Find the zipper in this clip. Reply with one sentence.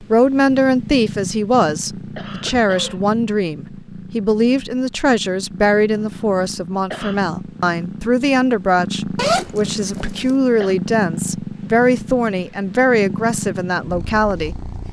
The zipper can be heard from 9.2 to 10.3 s.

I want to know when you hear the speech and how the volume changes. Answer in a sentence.
You can hear the speech from 0.0 to 14.6 s, at a steady volume.